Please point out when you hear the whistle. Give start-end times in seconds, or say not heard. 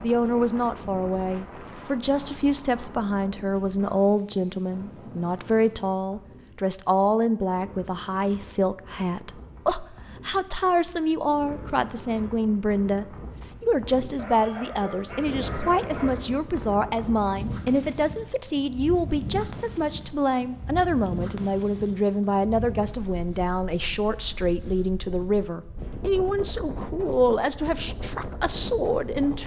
not heard.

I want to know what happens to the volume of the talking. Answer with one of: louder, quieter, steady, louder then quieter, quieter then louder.
steady.